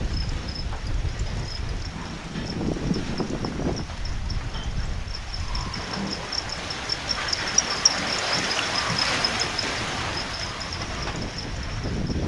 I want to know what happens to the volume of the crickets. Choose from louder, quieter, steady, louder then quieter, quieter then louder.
louder then quieter.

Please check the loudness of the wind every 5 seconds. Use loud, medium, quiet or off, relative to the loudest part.
loud, medium, loud.